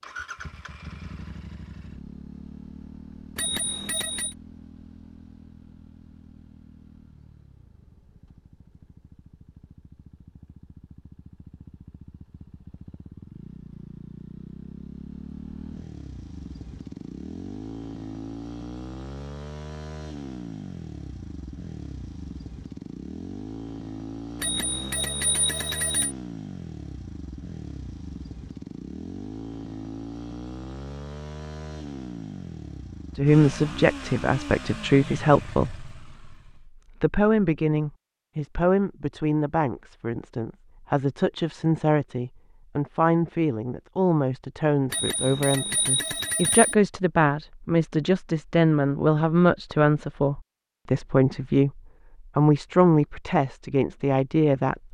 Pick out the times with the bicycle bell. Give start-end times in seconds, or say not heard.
3.4-4.3, 24.4-26.1, 44.9-46.8.